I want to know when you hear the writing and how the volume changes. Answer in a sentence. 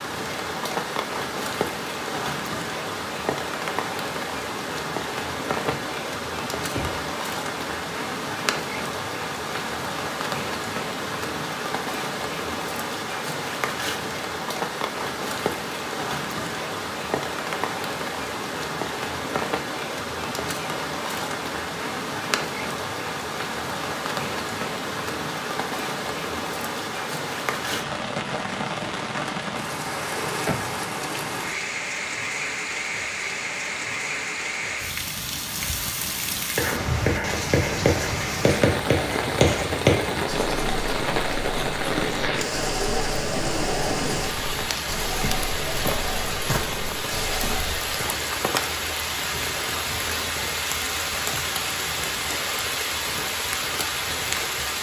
You can hear the writing from 36.5 to 47.9 s, getting quieter.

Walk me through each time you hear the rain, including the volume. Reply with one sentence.
The rain can be heard from 0.0 to 54.7 s, at a steady volume.